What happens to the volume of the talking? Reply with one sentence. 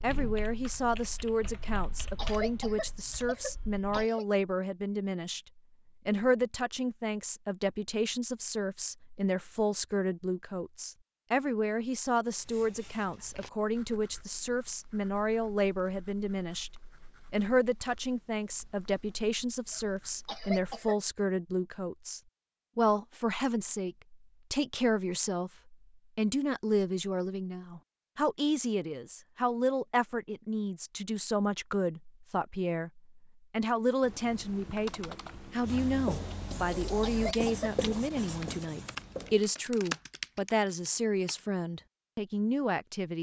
The loudness of the talking stays about the same.